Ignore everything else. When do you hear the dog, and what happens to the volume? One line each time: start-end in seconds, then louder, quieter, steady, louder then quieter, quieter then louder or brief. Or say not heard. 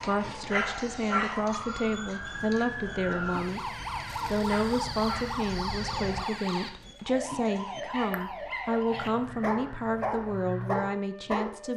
0.0-11.7 quieter then louder.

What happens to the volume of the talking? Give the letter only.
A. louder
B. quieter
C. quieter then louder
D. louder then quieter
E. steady
E.